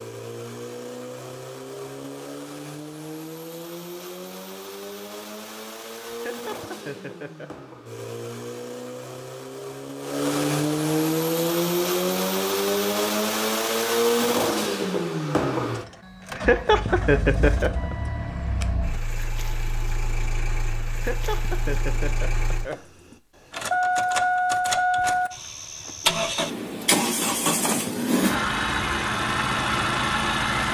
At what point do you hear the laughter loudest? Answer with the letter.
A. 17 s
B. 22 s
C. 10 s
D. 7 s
A.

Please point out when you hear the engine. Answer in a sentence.
The engine can be heard from 0.0 to 30.6 s.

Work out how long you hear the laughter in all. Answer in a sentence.
You can hear the laughter for 5 seconds altogether.